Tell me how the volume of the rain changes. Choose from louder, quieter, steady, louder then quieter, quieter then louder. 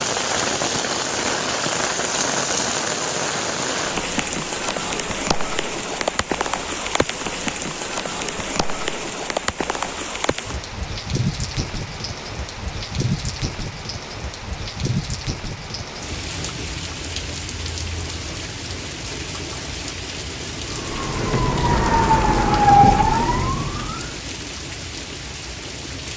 quieter.